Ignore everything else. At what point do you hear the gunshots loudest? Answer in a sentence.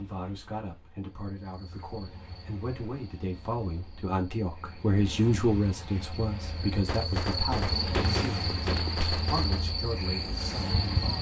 The volume of the gunshots peaks at 8 seconds.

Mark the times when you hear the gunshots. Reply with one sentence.
The gunshots can be heard from 6.8 to 9.8 s.